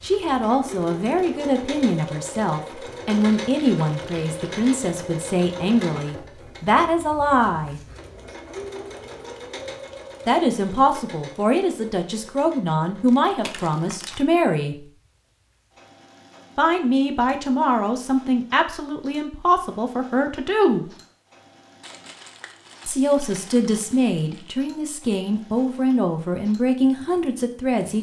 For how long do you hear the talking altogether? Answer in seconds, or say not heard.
22 s.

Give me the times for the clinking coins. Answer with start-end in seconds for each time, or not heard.
not heard.